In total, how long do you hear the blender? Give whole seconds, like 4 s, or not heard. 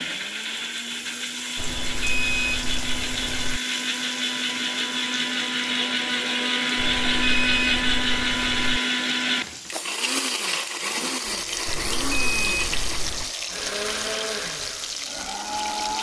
16 s.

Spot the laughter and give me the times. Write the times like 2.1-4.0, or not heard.
not heard.